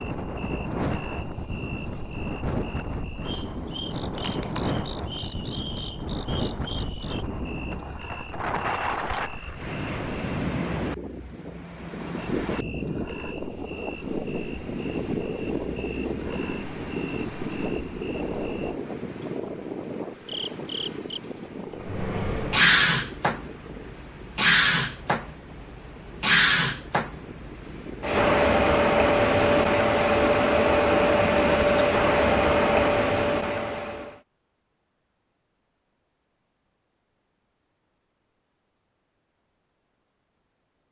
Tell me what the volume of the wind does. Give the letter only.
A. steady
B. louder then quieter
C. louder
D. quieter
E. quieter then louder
D.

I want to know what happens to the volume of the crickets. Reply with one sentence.
The volume of the crickets goes up.